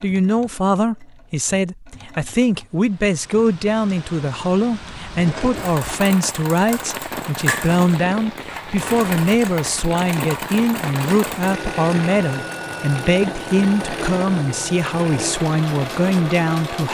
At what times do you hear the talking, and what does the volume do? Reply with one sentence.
You can hear the talking from 0.0 to 16.9 s, at a steady volume.